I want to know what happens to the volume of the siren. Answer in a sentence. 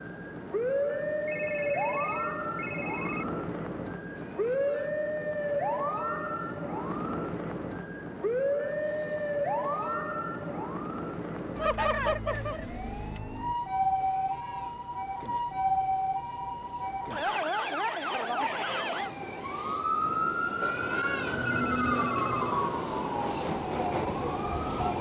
The loudness of the siren stays about the same.